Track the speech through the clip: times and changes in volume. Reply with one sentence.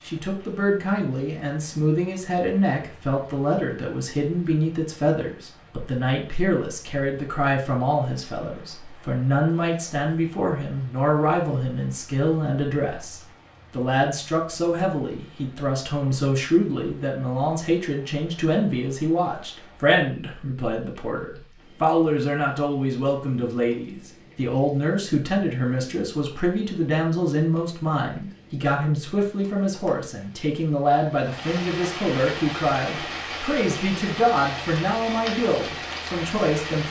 The speech can be heard from 0.0 to 36.8 s, at a steady volume.